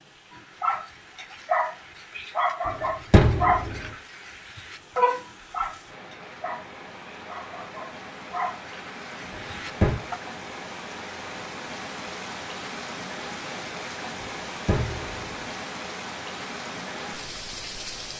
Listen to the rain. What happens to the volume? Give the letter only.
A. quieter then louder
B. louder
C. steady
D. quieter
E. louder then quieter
B.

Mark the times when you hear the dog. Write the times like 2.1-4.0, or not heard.
0.3-10.2.